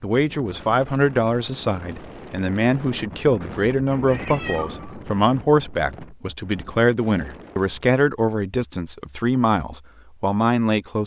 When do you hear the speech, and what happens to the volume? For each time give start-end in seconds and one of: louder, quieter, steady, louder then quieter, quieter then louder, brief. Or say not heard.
0.0-11.0 steady.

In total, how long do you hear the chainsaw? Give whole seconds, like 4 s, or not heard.
not heard.